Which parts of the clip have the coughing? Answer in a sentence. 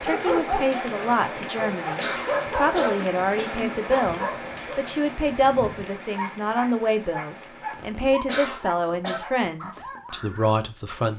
The coughing can be heard from 1.9 to 3.6 s and from 8.2 to 9.2 s.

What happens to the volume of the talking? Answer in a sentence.
The volume of the talking stays about the same.